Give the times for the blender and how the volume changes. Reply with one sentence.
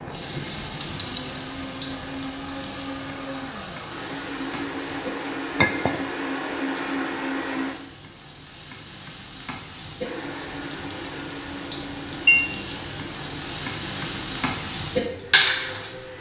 The blender can be heard from 0.0 to 7.8 s, getting louder; and from 10.0 to 16.1 s, getting quieter.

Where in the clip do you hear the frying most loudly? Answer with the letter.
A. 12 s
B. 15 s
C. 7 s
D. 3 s
B.